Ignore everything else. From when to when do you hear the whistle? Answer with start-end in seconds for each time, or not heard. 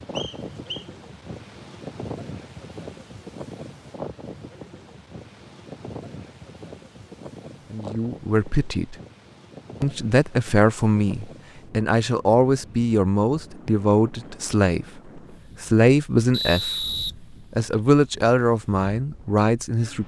0.1-0.8, 16.3-17.8.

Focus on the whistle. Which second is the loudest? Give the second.
17 s.